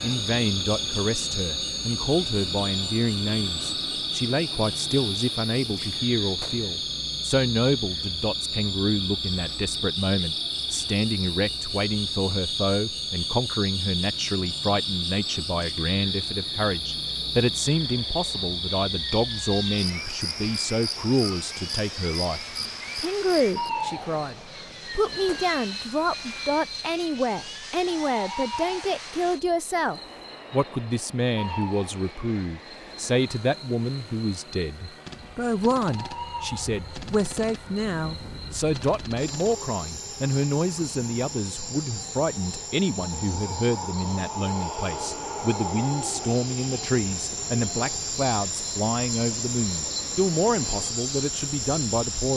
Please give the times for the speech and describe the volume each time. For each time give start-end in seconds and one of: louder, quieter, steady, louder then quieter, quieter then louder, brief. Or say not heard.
0.0-52.3 steady.